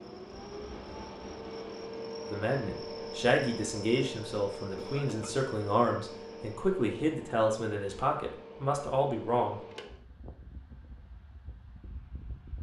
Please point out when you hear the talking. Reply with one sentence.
You can hear the talking from 2.3 to 9.6 s.